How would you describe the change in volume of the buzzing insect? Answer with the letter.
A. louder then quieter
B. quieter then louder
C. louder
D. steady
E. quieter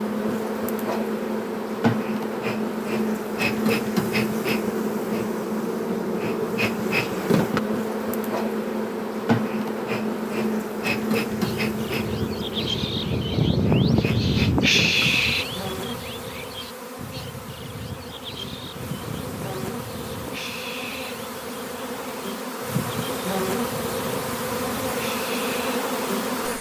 B.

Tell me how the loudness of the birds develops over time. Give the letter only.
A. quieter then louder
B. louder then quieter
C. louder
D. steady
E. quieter
E.